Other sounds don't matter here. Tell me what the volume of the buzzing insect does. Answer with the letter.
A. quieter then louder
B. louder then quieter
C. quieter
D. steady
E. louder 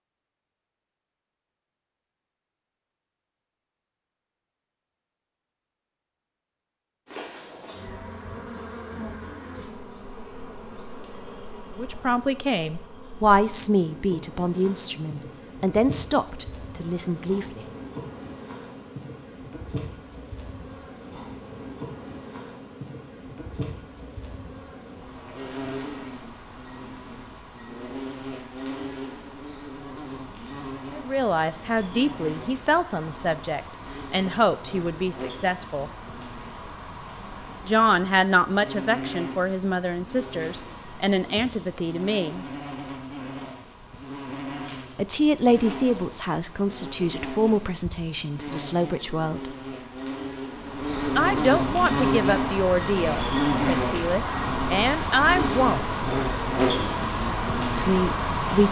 E.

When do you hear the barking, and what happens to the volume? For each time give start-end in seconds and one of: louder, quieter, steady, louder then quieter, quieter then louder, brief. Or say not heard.
not heard.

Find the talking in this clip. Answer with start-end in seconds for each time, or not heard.
11.8-17.6, 30.9-35.9, 37.6-42.5, 45.0-49.5, 51.1-56.0, 57.8-58.6.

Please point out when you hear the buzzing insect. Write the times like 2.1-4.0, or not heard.
7.0-58.6.